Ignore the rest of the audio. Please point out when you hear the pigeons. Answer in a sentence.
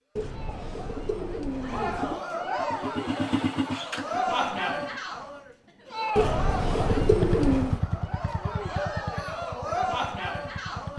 The pigeons can be heard from 0.1 to 2.2 s and from 6.2 to 7.8 s.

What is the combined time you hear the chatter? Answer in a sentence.
The chatter can be heard for 11 seconds in total.